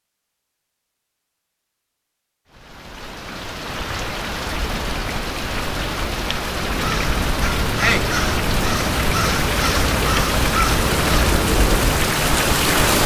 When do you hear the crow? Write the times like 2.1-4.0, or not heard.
6.8-11.3.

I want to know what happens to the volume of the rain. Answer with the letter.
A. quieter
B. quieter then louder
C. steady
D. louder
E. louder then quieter
D.